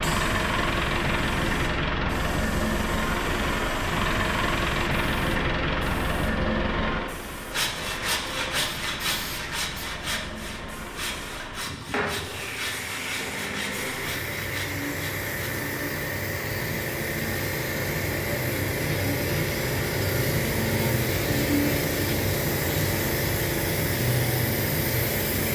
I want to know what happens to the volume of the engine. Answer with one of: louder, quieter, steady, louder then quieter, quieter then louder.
quieter.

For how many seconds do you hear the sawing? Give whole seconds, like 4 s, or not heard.
8 s.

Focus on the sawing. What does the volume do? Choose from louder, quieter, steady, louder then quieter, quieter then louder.
quieter.